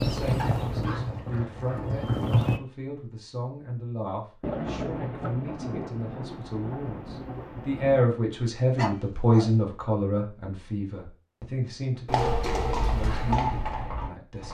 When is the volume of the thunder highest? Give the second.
5 s.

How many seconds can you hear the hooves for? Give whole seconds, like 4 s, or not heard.
5 s.